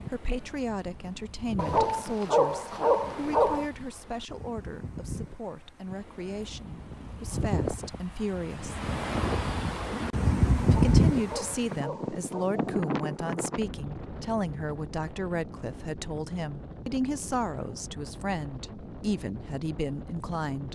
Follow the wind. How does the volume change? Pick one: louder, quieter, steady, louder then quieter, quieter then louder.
louder then quieter.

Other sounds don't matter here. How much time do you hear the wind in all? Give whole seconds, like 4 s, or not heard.
21 s.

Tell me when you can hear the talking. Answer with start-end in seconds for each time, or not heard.
0.1-8.8, 10.7-20.7.